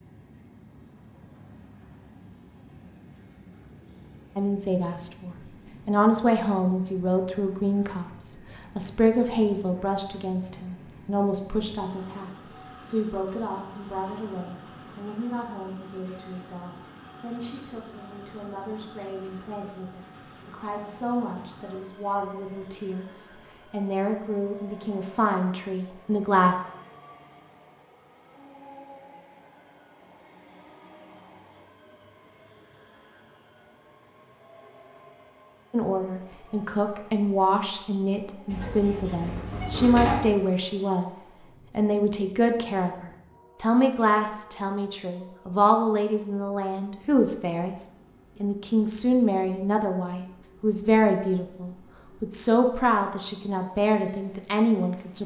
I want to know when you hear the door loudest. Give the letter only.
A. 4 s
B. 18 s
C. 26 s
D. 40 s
D.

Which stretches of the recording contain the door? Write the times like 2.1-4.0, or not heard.
38.5-40.4.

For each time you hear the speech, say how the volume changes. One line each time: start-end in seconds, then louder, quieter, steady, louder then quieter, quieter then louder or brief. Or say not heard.
4.3-26.6 quieter then louder
35.7-55.2 steady.